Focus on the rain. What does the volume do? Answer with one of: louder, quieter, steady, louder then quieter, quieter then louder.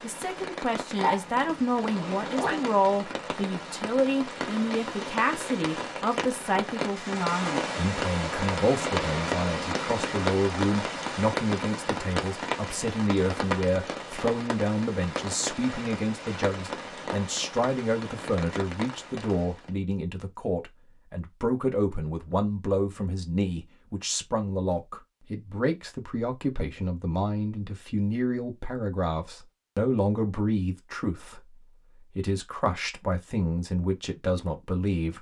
louder then quieter.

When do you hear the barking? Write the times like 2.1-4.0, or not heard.
1.0-2.6.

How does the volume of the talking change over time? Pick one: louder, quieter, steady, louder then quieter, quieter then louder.
steady.